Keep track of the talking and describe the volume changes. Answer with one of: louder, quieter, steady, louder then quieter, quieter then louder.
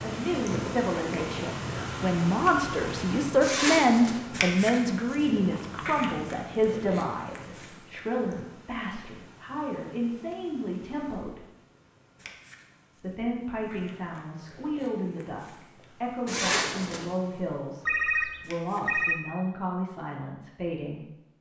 quieter.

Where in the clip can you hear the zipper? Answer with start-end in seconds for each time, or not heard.
3.4-4.2, 16.2-17.1.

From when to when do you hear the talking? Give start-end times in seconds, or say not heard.
0.0-11.4, 13.0-21.0.